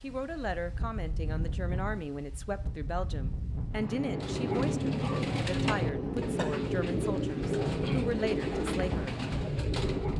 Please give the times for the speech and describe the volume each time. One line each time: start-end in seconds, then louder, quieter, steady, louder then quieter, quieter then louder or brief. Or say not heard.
0.0-9.2 steady.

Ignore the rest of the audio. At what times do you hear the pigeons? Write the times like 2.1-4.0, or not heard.
4.2-10.1.